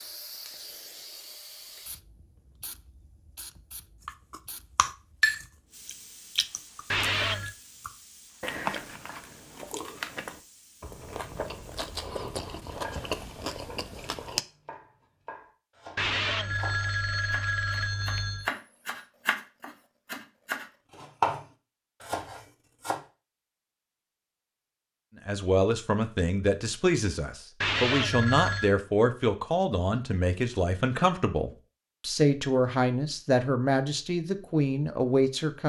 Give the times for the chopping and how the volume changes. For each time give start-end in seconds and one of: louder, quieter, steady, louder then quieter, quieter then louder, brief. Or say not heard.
12.8-23.0 louder.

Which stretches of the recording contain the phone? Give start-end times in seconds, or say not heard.
6.9-7.5, 15.9-18.5, 27.6-28.8.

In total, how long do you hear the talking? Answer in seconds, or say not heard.
10 s.